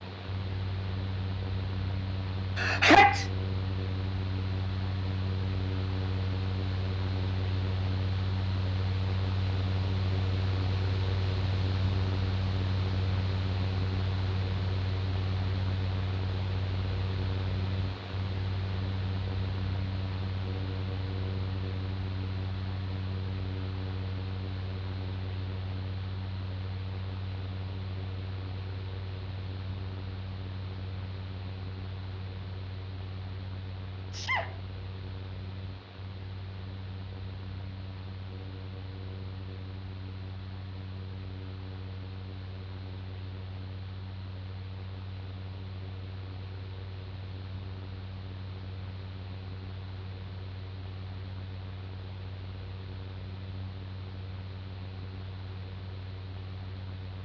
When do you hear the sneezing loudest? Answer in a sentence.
The volume of the sneezing peaks at 3 seconds.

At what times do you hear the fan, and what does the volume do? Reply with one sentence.
You can hear the fan from 0.0 to 57.2 s, getting quieter.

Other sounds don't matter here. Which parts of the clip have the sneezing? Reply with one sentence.
The sneezing can be heard from 2.5 to 3.3 s and from 34.1 to 34.6 s.